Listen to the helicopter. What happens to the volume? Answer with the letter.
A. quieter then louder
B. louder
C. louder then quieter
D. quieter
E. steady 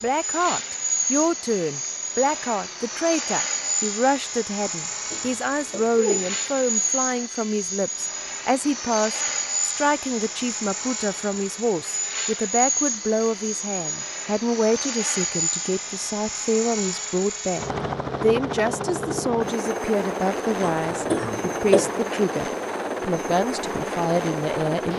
E.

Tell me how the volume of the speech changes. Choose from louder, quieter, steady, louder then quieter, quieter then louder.
steady.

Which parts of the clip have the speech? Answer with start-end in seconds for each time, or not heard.
0.0-24.9.